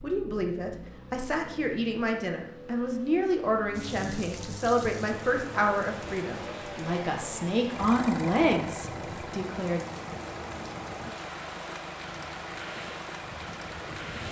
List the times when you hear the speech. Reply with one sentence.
The speech can be heard from 0.0 to 9.8 s.